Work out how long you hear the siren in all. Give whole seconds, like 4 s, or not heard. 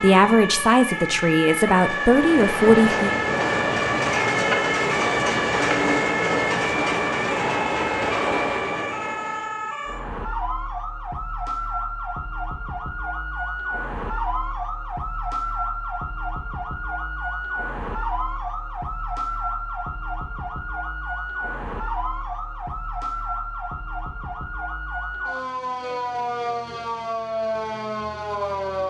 29 s.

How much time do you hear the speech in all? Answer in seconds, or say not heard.
3 s.